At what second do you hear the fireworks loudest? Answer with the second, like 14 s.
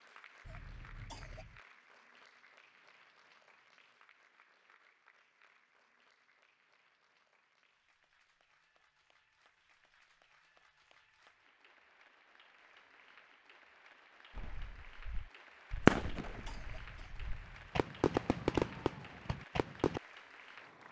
16 s.